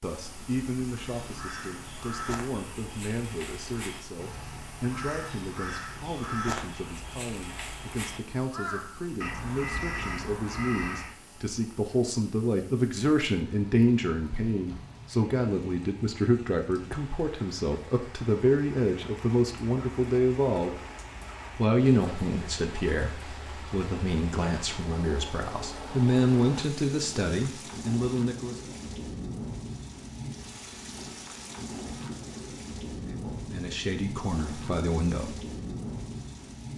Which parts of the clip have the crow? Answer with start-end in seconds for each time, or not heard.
0.9-11.2.